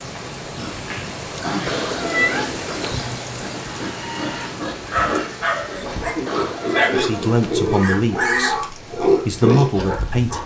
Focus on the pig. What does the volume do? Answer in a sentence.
The volume of the pig goes up.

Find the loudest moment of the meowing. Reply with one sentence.
The volume of the meowing peaks at 2 seconds.